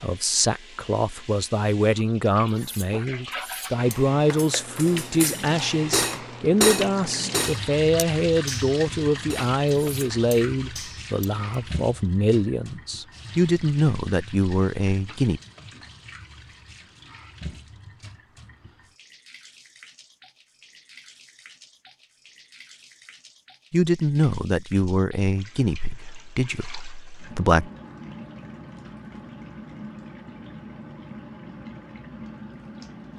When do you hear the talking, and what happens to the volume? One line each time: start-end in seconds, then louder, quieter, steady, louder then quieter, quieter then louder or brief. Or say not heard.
0.0-15.4 steady
23.7-27.7 quieter.